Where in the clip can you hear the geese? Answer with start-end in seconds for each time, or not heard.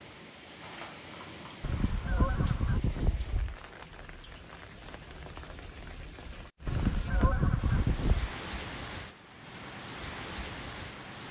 1.6-3.6, 6.7-8.3.